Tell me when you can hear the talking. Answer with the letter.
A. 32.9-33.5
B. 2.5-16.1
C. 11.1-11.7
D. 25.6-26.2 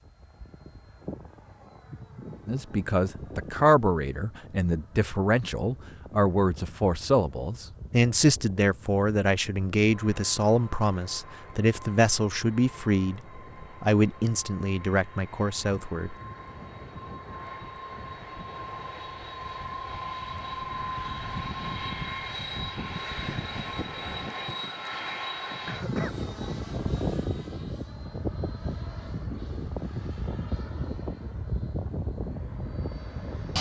B.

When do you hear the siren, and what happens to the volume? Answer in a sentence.
The siren can't be heard in this clip.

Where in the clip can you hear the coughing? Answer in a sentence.
You can hear the coughing from 25.6 to 26.2 s.